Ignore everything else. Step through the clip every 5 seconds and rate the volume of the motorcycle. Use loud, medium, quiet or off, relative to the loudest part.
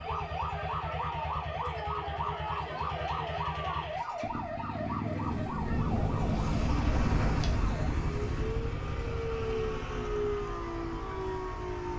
medium, loud, medium.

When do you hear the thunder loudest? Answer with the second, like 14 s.
6 s.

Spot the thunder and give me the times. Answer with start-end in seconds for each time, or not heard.
5.2-8.7.